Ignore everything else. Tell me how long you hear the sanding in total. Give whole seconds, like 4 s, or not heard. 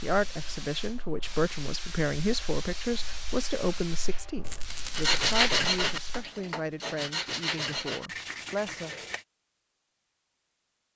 4 s.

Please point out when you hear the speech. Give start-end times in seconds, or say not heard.
0.0-8.9.